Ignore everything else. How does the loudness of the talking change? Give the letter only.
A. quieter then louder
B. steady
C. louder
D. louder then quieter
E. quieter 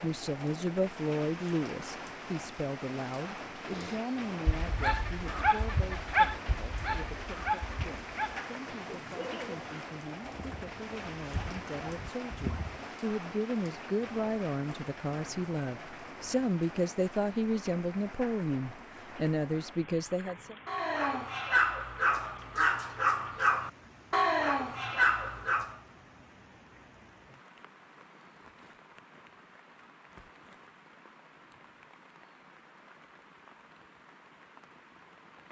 A.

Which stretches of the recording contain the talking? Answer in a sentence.
You can hear the talking from 0.0 to 20.6 s.